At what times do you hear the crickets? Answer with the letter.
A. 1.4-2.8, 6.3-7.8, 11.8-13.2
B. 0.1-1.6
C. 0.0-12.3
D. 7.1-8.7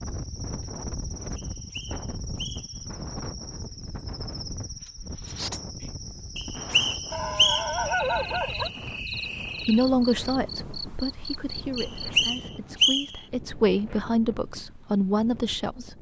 C.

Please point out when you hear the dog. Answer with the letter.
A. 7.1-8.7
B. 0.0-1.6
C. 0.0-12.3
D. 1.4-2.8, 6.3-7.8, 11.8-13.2
A.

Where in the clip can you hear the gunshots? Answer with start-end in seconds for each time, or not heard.
not heard.